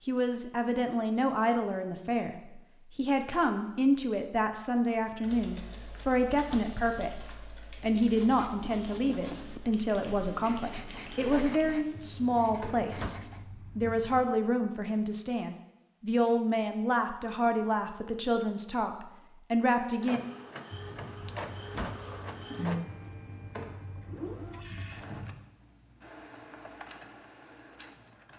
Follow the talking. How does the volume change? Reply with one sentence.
The volume of the talking stays about the same.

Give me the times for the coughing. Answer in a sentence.
You can't hear the coughing here.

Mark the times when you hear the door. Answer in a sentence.
The door can be heard from 6.3 to 6.8 s, from 12.8 to 13.2 s and from 21.6 to 22.0 s.